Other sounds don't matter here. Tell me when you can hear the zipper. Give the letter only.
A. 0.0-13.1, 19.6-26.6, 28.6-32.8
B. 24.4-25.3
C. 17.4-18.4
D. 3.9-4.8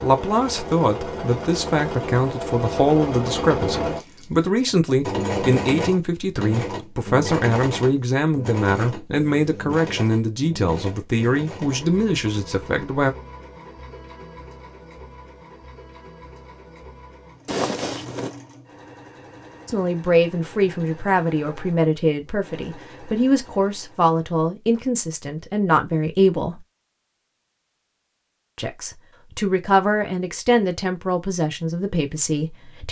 C.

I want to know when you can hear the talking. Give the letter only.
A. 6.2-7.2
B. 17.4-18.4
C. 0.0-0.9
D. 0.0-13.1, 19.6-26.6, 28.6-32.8
D.